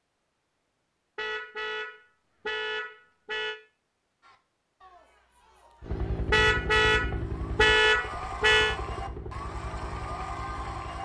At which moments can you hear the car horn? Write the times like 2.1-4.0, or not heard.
1.1-3.5, 6.3-8.8.